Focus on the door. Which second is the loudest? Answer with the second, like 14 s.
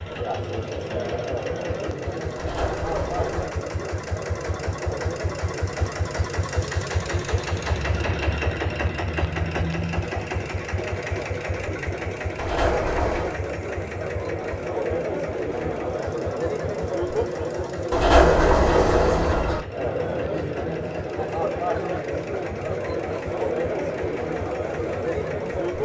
18 s.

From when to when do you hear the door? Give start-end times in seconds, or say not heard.
2.4-3.5, 12.3-13.3, 17.9-19.6.